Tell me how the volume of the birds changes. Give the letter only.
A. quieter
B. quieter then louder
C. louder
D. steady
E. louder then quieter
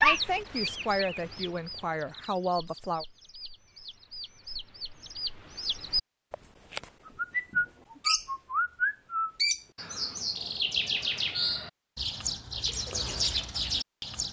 C.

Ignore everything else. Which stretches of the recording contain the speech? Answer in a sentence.
You can hear the speech from 0.0 to 3.0 s.